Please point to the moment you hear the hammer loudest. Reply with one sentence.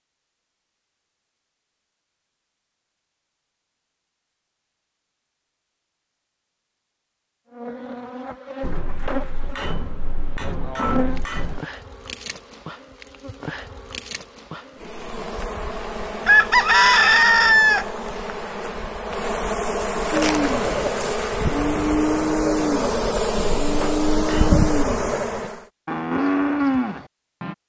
The loudest moment of the hammer is at 11 seconds.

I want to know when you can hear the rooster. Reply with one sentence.
You can hear the rooster from 16.2 to 17.9 s.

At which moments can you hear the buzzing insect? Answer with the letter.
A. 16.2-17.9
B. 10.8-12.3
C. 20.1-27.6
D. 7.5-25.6
D.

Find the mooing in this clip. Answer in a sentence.
The mooing can be heard from 20.1 to 27.6 s.